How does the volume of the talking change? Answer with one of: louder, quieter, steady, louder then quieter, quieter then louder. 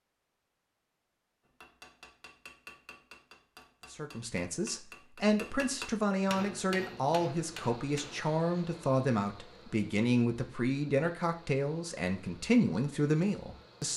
steady.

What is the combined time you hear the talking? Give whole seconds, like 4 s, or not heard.
10 s.